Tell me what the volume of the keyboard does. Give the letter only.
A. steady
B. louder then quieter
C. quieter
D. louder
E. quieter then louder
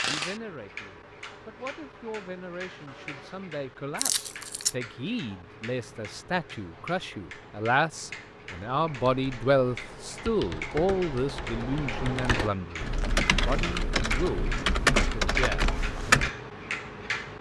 D.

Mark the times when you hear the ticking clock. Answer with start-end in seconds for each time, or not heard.
0.0-17.3.